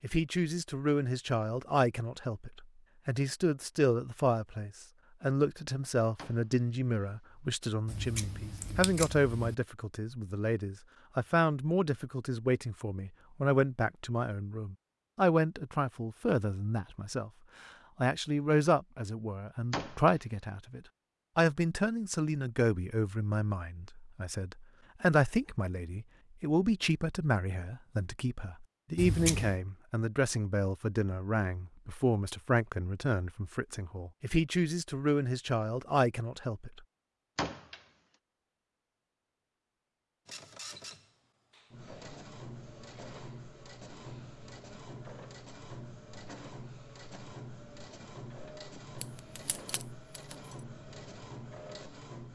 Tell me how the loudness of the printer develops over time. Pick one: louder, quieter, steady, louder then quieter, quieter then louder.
steady.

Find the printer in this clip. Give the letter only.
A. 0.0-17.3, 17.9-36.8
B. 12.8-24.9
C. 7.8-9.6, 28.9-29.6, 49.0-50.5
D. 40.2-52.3
D.